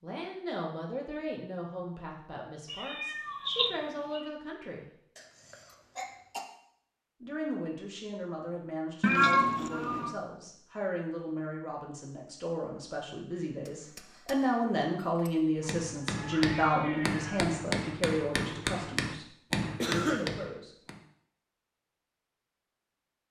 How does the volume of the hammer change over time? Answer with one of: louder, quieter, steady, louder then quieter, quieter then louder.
louder.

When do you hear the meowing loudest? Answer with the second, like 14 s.
9 s.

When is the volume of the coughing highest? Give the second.
20 s.